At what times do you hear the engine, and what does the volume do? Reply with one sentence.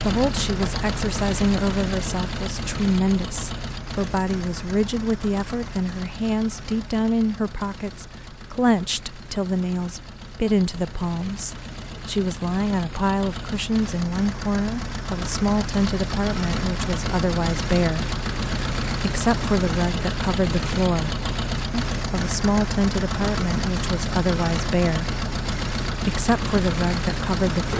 The engine can be heard from 0.0 to 27.7 s, getting quieter then louder.